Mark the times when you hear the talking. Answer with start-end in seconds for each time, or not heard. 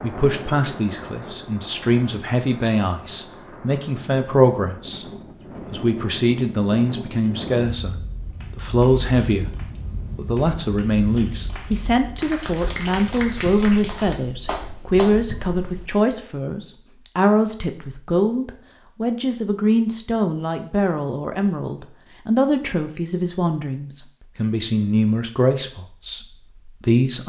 0.0-5.0, 5.7-8.0, 8.6-9.6, 10.2-27.2.